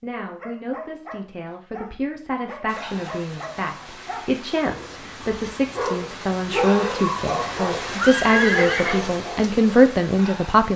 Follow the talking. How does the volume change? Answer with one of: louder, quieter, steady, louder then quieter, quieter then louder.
louder.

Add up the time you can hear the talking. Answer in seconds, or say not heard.
11 s.